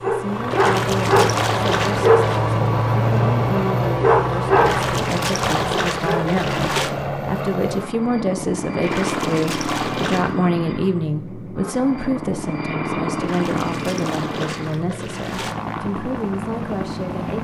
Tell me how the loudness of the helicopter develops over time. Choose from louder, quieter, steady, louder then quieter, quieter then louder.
steady.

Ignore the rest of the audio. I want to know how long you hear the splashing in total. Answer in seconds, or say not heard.
8 s.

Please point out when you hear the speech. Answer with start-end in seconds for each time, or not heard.
0.1-17.4.